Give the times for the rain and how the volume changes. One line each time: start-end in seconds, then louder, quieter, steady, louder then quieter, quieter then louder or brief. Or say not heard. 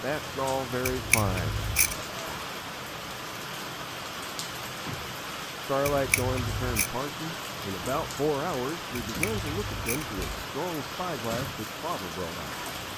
0.0-12.9 steady.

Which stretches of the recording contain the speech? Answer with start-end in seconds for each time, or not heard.
0.0-2.5, 5.5-12.6.